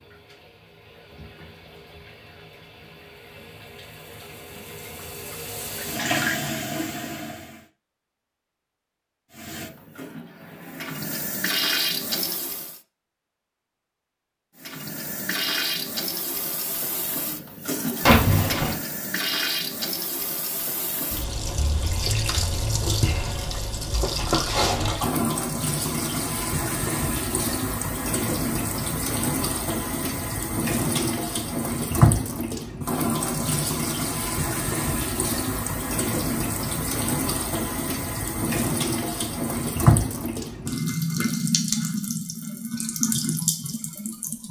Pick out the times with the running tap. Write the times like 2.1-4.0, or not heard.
0.0-7.7, 9.3-12.8, 14.6-44.4.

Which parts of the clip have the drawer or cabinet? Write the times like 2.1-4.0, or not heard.
18.1-18.8.